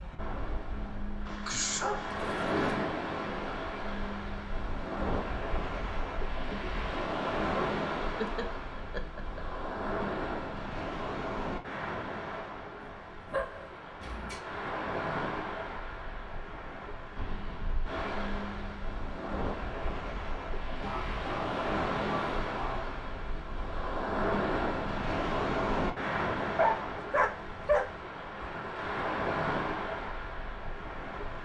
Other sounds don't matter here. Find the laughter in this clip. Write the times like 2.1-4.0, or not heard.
8.2-9.4.